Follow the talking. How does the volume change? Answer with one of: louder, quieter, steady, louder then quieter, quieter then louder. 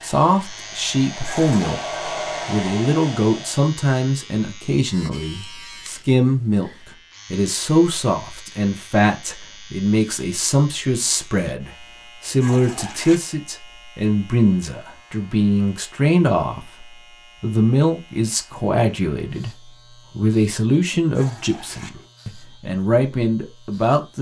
steady.